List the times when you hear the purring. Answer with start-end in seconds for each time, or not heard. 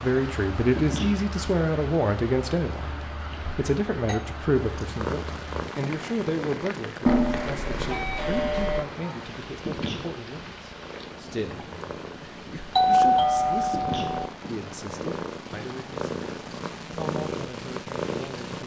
4.5-18.6.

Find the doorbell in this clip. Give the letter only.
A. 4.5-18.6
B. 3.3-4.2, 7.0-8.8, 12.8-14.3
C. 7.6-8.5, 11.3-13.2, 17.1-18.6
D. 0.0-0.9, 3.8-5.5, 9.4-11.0
B.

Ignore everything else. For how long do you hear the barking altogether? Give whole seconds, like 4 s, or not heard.
not heard.